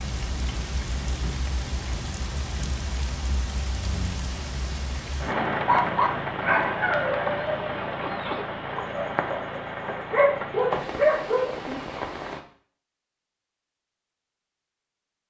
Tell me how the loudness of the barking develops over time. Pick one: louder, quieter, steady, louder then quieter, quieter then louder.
quieter then louder.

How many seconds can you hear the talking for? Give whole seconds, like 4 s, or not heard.
not heard.